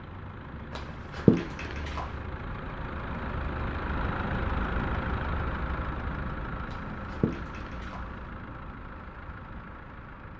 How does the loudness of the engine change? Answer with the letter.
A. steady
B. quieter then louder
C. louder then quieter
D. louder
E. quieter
C.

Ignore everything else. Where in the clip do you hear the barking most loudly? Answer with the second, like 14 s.
1 s.